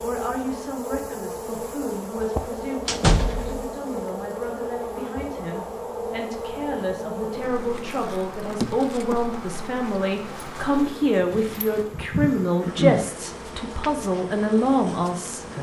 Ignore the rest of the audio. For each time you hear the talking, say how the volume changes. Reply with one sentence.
The talking can be heard from 0.0 to 15.4 s, getting louder.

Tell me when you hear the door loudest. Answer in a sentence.
The loudest moment of the door is at 3 seconds.